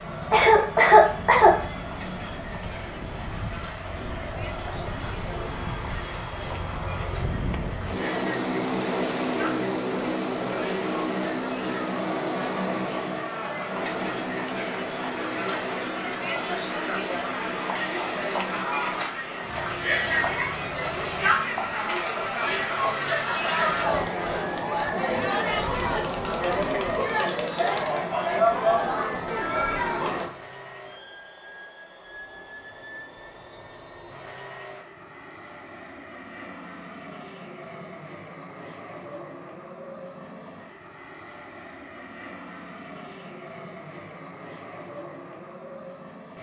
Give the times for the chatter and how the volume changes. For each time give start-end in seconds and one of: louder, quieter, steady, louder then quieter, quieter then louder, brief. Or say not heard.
0.0-30.3 louder.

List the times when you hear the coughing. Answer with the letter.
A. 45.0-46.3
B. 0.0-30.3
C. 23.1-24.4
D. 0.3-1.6
D.